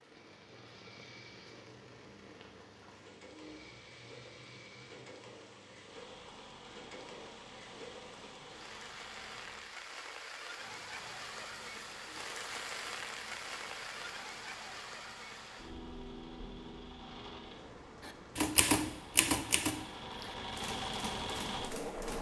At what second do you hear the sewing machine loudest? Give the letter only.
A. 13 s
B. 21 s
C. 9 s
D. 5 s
B.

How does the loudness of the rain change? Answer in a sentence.
The loudness of the rain goes up, then down.